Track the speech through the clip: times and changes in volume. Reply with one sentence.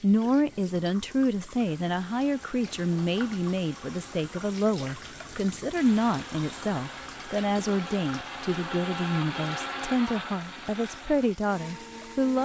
The speech can be heard from 0.0 to 12.4 s, at a steady volume.